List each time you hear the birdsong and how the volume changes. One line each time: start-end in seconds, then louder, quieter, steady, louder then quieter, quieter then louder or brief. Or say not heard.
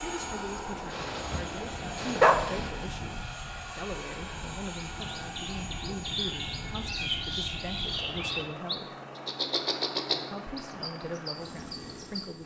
4.7-12.2 louder then quieter.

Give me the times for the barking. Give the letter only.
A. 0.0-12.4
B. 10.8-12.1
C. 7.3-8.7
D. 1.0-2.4
D.